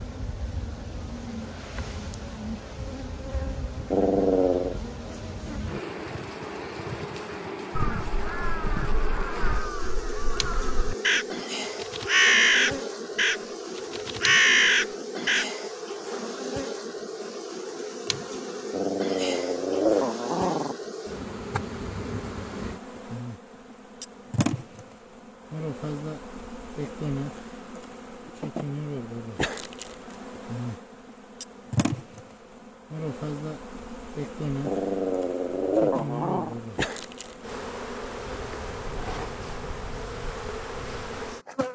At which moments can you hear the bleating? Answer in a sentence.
You can't hear the bleating here.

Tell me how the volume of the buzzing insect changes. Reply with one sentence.
The loudness of the buzzing insect stays about the same.